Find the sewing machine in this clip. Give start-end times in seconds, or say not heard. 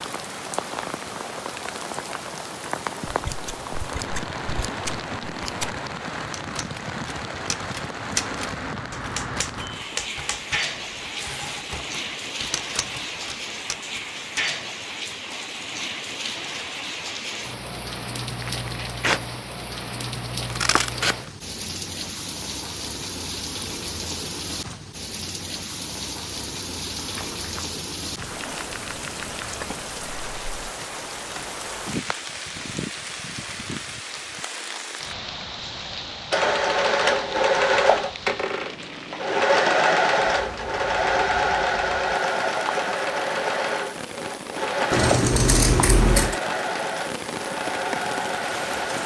36.3-49.0.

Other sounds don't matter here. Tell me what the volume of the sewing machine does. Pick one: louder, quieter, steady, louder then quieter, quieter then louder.
quieter.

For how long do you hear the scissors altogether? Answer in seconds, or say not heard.
5 s.